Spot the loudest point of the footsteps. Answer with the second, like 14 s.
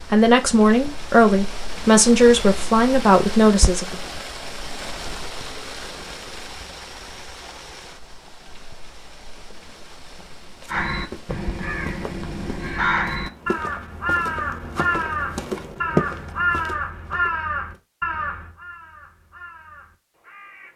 16 s.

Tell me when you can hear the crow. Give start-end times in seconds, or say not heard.
10.7-20.7.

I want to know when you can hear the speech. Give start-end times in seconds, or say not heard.
0.1-4.0.